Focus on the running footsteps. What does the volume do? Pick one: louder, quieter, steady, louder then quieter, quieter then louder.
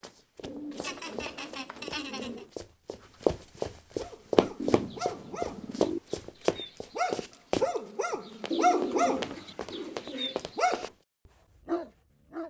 louder then quieter.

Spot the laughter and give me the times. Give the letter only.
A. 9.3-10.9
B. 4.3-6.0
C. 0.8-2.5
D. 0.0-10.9
C.